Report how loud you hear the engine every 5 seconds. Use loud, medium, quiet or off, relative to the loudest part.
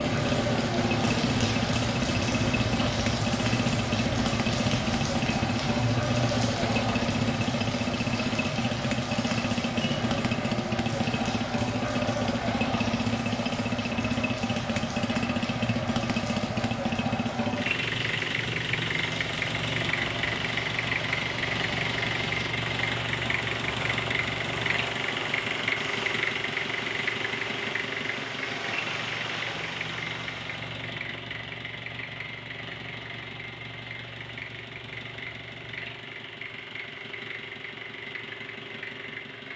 loud, loud, loud, loud, loud, loud, medium, medium.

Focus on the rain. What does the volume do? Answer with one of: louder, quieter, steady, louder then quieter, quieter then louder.
quieter.